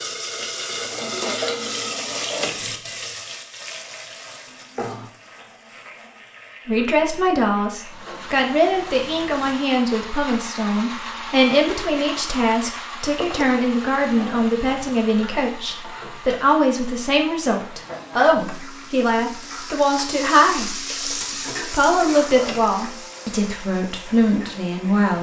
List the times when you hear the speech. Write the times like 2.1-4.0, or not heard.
6.7-20.8, 21.6-25.1.